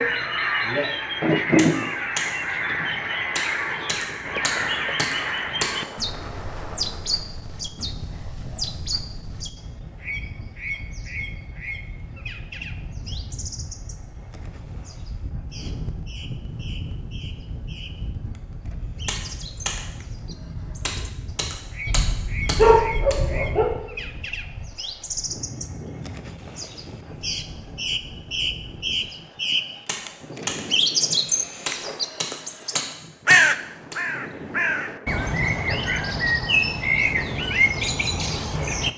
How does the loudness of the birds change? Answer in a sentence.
The volume of the birds goes down, then up.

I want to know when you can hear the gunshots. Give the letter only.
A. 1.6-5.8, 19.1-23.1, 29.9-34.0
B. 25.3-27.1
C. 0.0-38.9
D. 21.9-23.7
A.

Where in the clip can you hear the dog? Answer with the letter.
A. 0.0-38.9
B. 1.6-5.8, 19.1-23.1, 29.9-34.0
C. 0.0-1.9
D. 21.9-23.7
D.